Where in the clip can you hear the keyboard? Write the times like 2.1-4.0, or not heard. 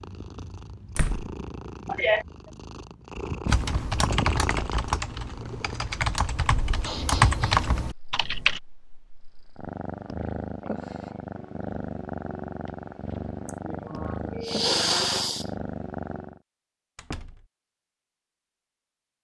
3.5-8.6.